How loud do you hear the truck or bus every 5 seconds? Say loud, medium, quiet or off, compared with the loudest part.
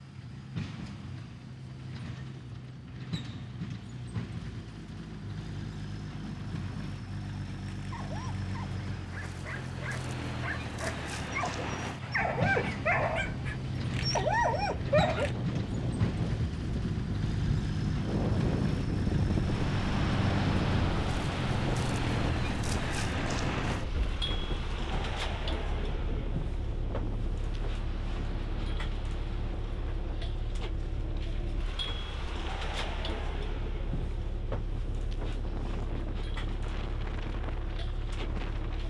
medium, medium, loud, loud, loud, medium, medium, medium.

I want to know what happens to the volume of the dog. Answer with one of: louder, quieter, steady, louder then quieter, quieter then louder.
louder.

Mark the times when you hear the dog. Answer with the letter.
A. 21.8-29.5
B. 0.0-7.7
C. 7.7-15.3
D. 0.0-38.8
C.